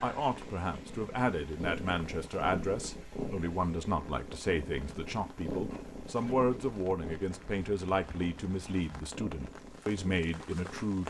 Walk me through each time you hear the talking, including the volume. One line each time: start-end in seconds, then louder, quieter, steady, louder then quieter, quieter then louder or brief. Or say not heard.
0.0-11.0 steady.